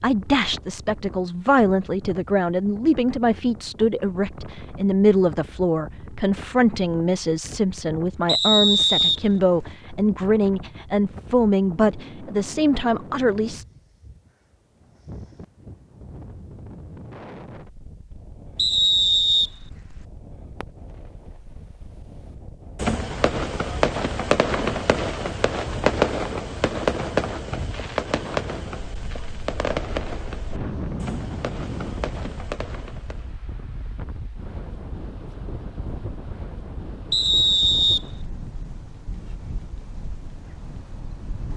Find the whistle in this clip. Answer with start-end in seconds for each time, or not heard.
8.2-9.7, 18.6-20.0, 37.1-38.0.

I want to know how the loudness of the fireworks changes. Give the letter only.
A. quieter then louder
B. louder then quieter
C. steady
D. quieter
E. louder
D.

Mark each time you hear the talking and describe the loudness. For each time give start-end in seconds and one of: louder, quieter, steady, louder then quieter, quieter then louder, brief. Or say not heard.
0.0-13.7 steady.